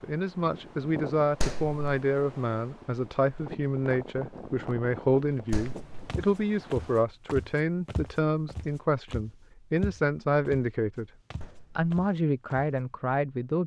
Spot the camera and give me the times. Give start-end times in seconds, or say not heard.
not heard.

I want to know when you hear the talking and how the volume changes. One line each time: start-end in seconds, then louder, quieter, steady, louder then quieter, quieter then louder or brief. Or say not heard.
0.0-11.1 steady
11.8-13.6 brief.